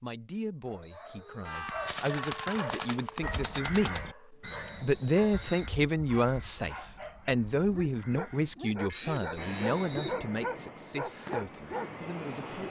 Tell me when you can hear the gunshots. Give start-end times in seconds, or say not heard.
1.4-4.0.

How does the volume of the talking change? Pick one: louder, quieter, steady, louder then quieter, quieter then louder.
louder then quieter.